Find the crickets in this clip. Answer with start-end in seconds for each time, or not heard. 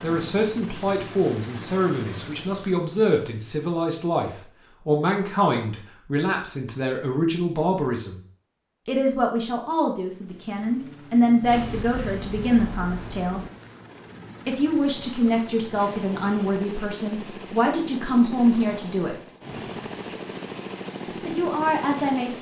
not heard.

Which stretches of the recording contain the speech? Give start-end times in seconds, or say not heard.
0.0-8.2, 8.8-13.4, 14.4-19.1, 21.2-22.3.